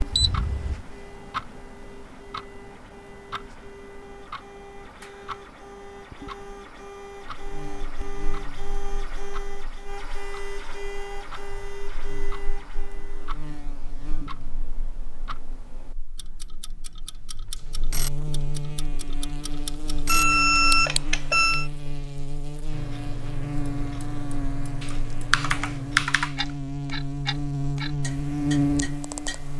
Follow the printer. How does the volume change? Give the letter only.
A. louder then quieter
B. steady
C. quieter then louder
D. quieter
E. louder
E.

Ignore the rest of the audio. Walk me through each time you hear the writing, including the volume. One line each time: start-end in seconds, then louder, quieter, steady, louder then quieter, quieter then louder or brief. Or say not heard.
not heard.